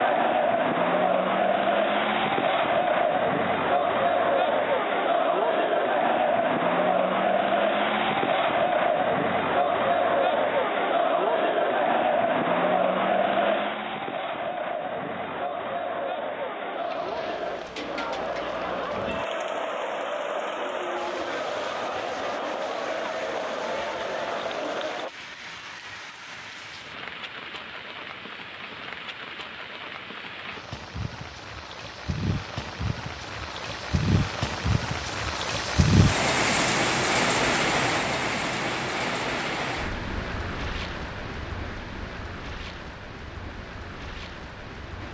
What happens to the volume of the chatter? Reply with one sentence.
The loudness of the chatter goes down.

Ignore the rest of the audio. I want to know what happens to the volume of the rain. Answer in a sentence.
The loudness of the rain goes up, then down.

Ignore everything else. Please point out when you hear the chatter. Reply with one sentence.
You can hear the chatter from 0.0 to 25.1 s.